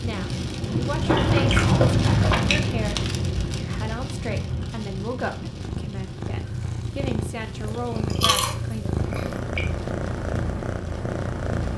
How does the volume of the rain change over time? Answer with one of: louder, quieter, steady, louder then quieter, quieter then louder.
quieter.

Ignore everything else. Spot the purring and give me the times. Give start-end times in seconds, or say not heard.
5.5-11.7.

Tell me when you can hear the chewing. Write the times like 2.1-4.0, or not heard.
1.1-2.6, 7.7-9.5.